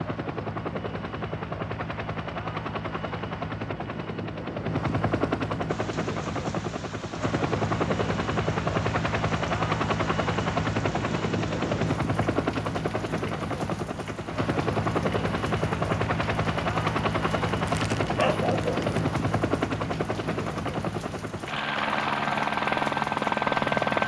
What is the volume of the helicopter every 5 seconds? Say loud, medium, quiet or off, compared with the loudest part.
medium, loud, loud, loud, loud.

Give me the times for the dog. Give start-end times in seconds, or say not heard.
17.6-19.1.